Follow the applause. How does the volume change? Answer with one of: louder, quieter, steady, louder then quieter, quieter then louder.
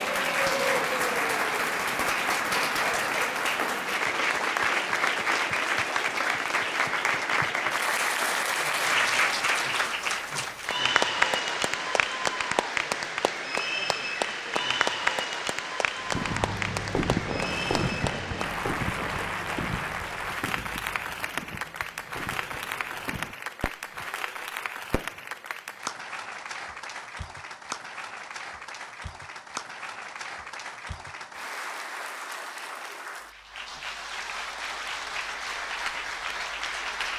quieter.